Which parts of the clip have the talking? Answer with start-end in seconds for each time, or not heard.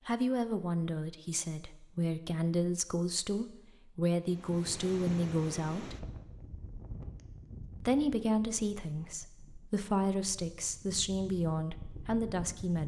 0.1-6.0, 7.8-12.8.